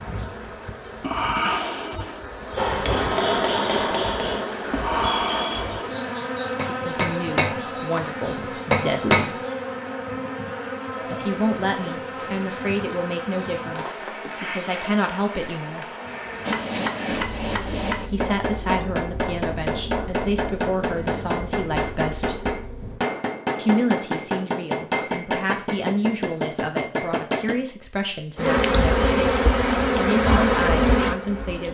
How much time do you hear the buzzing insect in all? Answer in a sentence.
The buzzing insect can be heard for 26 seconds in total.